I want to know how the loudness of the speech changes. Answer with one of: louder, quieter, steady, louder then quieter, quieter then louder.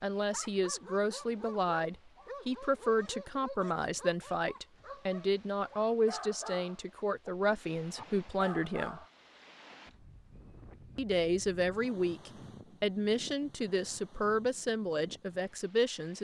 steady.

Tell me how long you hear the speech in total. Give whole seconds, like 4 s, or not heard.
14 s.